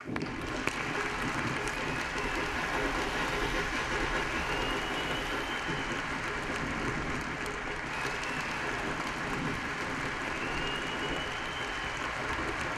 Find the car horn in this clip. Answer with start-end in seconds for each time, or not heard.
not heard.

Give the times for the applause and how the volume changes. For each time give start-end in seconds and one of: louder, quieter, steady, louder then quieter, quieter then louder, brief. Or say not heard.
0.0-12.7 steady.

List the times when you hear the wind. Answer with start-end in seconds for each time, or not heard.
0.0-12.7.